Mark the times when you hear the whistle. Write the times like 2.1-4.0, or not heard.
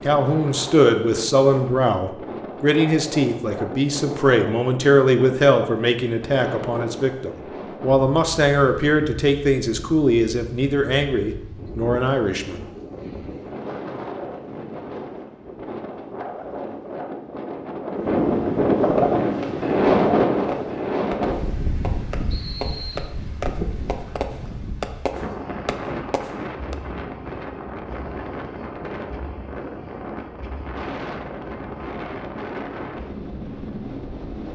22.3-23.1.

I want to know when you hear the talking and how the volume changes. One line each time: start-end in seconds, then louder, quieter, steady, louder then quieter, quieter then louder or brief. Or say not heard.
0.1-12.7 steady.